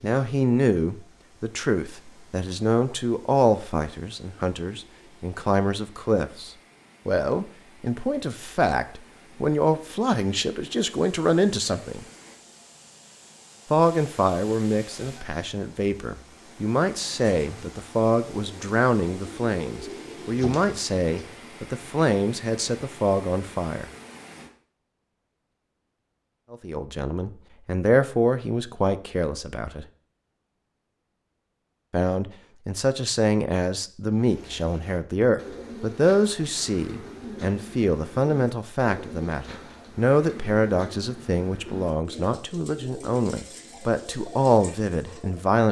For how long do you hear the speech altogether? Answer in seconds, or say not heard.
39 s.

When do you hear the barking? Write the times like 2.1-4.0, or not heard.
not heard.